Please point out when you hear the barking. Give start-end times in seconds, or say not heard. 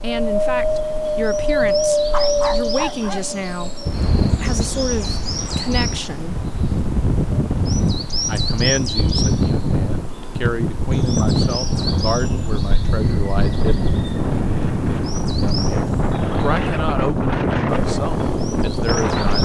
2.1-3.2.